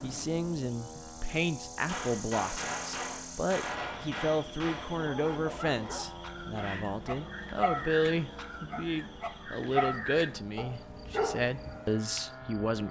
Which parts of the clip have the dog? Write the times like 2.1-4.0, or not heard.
5.0-12.2.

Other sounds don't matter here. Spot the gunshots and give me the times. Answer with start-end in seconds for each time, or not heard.
1.9-5.0.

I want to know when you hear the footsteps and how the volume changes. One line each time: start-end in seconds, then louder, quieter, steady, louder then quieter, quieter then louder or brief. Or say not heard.
not heard.